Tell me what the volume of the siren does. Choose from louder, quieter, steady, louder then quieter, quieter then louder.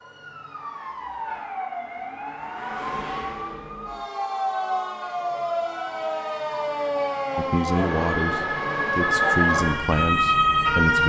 louder.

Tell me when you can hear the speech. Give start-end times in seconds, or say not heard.
7.3-11.0.